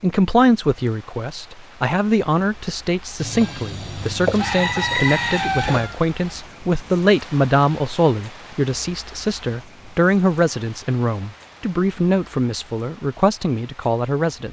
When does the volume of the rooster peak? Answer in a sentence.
The loudest moment of the rooster is at 5 seconds.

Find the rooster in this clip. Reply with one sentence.
The rooster can be heard from 3.2 to 6.0 s.